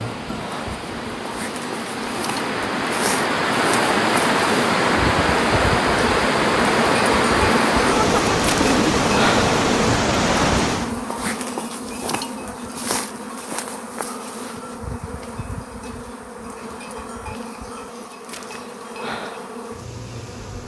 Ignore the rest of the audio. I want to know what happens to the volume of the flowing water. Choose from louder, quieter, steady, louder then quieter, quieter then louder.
louder.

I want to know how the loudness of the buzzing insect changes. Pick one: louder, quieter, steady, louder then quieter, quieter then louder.
louder then quieter.